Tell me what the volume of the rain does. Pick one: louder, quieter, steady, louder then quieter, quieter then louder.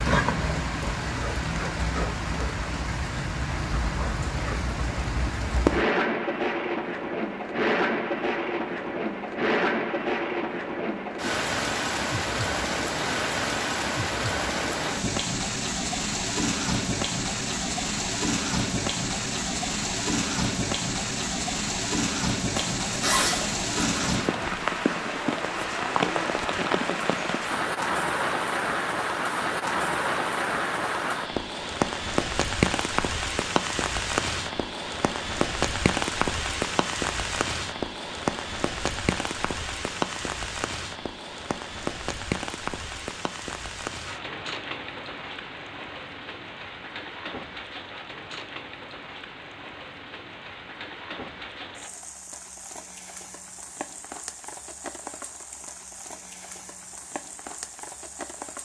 quieter.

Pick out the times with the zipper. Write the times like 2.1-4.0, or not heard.
22.6-24.1.